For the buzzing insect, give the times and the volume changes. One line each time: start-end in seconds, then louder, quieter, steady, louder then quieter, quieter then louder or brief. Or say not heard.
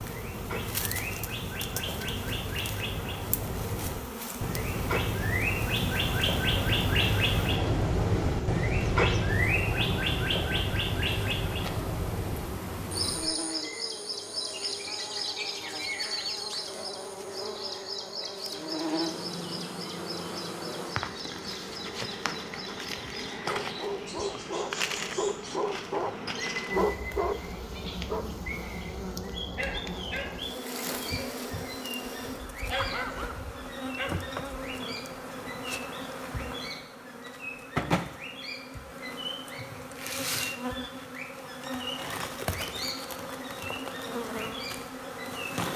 0.0-45.7 steady.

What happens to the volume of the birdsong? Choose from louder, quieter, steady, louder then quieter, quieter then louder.
quieter.